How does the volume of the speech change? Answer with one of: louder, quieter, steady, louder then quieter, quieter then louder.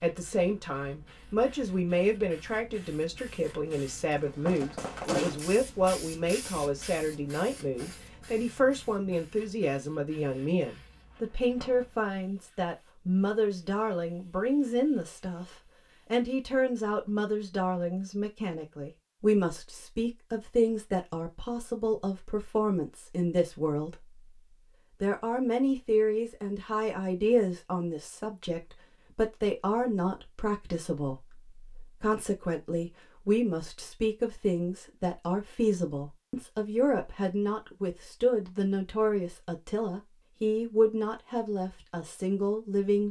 steady.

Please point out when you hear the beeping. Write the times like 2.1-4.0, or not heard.
not heard.